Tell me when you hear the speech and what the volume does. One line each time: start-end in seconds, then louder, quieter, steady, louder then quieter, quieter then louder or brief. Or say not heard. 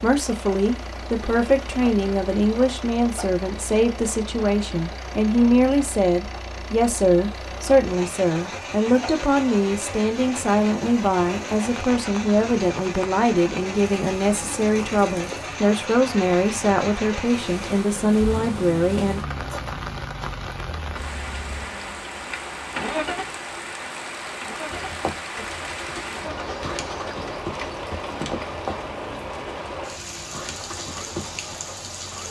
0.0-19.2 steady.